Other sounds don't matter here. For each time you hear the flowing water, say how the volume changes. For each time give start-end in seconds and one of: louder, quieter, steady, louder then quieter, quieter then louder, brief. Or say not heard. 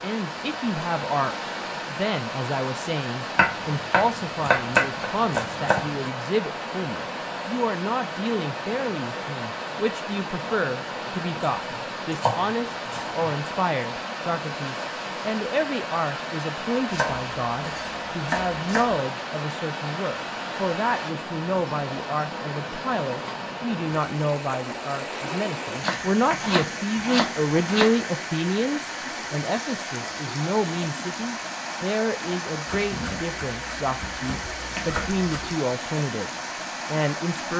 0.0-37.5 steady.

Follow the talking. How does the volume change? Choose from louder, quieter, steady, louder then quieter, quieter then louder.
steady.